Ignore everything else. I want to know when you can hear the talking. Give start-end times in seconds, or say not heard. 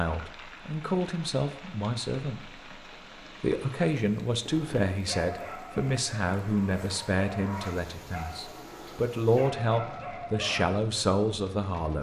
0.0-2.7, 3.4-11.9.